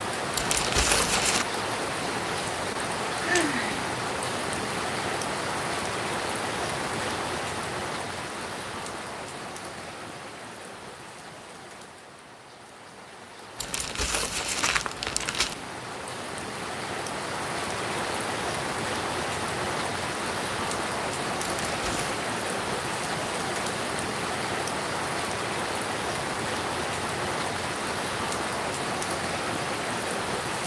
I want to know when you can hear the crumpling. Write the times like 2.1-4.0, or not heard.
0.3-1.4, 13.6-15.6, 21.6-22.1.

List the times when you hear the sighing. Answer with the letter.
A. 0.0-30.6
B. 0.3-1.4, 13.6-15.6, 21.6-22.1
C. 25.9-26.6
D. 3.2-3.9
D.